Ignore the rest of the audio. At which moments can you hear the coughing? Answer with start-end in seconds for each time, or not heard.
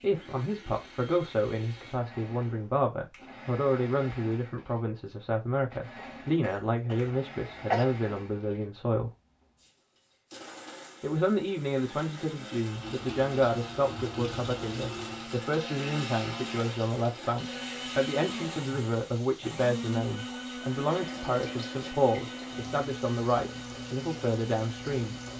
6.0-7.8.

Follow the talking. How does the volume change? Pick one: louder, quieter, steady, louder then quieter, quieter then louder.
steady.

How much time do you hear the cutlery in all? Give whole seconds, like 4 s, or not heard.
not heard.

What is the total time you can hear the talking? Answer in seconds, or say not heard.
23 s.